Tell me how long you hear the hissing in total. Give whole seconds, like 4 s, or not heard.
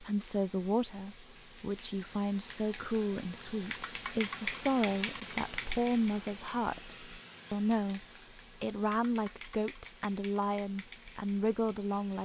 12 s.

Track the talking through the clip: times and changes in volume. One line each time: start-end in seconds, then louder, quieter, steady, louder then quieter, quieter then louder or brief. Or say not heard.
0.0-12.2 steady.